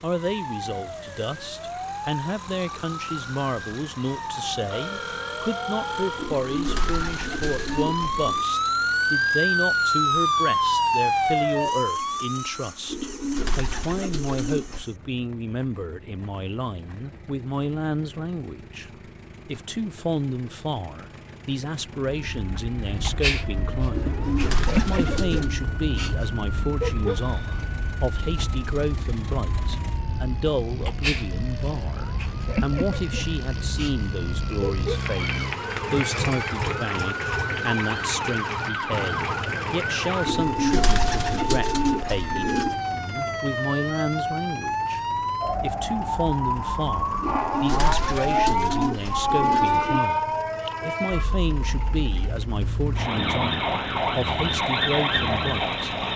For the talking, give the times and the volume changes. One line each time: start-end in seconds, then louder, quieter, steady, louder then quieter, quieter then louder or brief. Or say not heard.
0.0-55.9 steady.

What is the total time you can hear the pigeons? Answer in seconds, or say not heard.
11 s.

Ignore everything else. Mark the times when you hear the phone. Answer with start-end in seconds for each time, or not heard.
4.7-6.4.